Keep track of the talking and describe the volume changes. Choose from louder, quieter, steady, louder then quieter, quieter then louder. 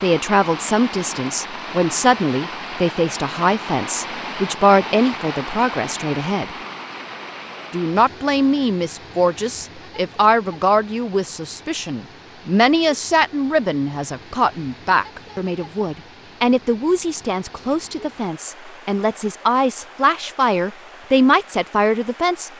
steady.